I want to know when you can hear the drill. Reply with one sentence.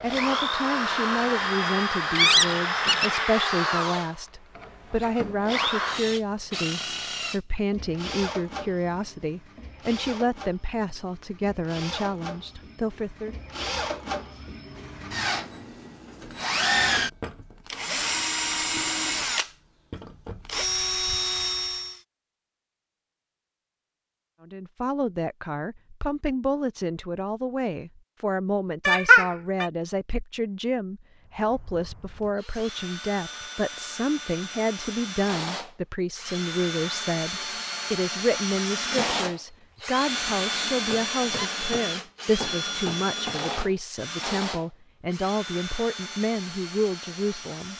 You can hear the drill from 0.0 to 22.0 s and from 31.2 to 47.7 s.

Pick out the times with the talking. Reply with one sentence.
The talking can be heard from 0.0 to 13.3 s and from 24.4 to 47.7 s.